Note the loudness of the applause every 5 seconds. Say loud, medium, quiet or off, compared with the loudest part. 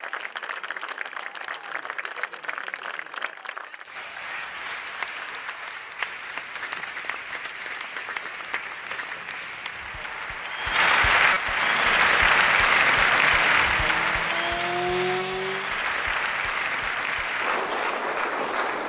quiet, quiet, loud, medium.